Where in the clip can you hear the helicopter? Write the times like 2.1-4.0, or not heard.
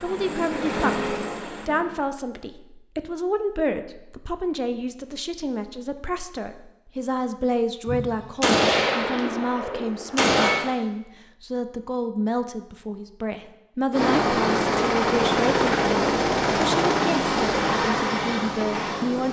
0.0-2.0, 13.9-19.2.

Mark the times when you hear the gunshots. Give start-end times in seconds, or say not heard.
7.8-10.7.